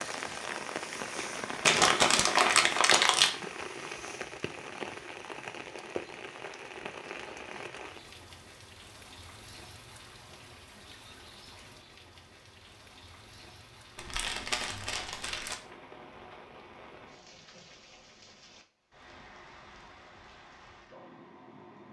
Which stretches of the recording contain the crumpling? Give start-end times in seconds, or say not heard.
1.6-3.3, 13.9-15.6.